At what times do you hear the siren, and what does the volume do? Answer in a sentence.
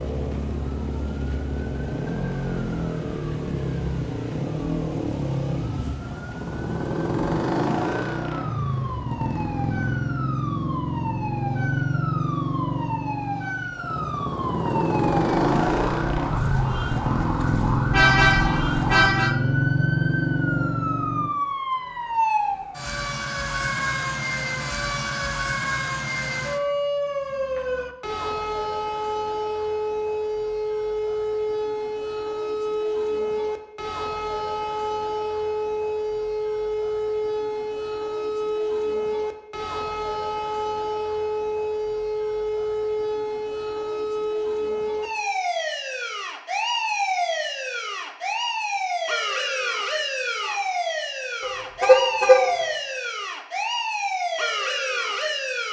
You can hear the siren from 0.0 to 55.6 s, getting louder.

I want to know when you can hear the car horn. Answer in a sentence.
You can hear the car horn from 17.9 to 19.4 s and from 51.4 to 52.5 s.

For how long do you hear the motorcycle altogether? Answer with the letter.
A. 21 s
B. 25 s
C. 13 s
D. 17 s
A.